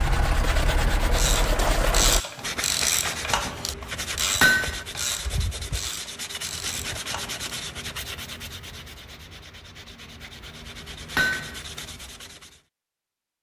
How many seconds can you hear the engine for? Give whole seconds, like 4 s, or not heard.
2 s.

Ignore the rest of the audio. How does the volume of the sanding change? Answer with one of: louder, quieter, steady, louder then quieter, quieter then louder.
quieter.